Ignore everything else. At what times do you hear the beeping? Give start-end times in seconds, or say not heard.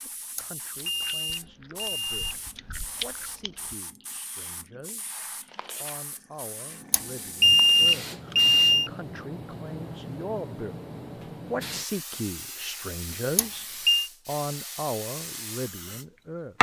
0.3-2.4, 6.9-8.9, 13.3-14.1.